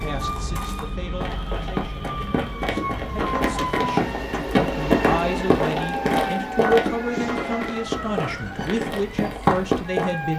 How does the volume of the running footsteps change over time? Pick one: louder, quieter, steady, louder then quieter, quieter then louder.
louder.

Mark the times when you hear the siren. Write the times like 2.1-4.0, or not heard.
0.0-3.9, 5.8-10.3.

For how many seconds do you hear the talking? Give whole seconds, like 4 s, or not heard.
10 s.